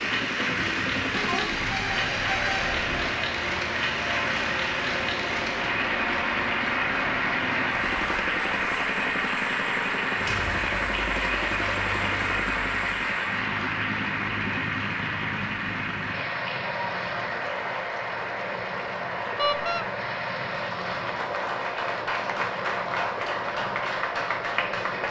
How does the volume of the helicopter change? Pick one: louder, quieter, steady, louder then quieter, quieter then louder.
steady.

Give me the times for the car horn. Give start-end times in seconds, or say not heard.
1.1-3.0, 19.4-19.9.